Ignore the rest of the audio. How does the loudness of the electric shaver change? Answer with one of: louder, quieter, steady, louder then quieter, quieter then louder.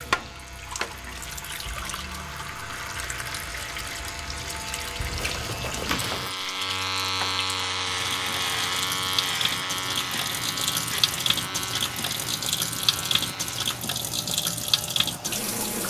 louder then quieter.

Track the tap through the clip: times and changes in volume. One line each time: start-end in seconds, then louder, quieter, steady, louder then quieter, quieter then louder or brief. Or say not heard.
0.0-15.8 louder.